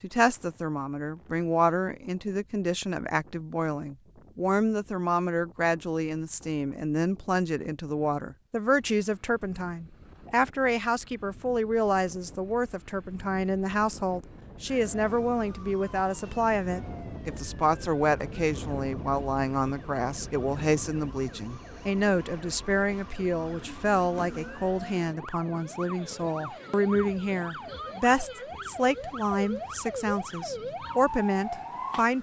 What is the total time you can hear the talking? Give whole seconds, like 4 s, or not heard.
32 s.